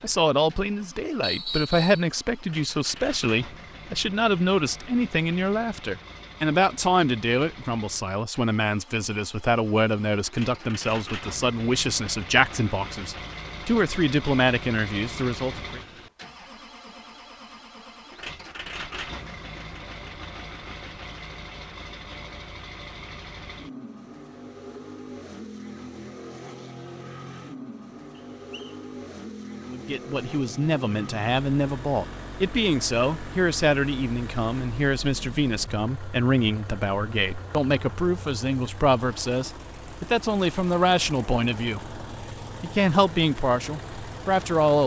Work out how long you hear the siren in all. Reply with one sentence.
The siren can't be heard in this clip.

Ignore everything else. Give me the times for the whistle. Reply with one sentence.
The whistle can be heard from 1.2 to 2.0 s and from 28.1 to 28.8 s.